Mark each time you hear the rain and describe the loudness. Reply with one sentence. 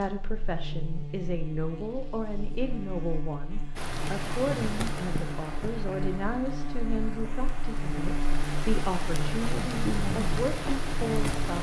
The rain can be heard from 3.8 to 11.5 s, getting quieter then louder.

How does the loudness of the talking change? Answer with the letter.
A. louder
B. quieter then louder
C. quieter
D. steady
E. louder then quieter
D.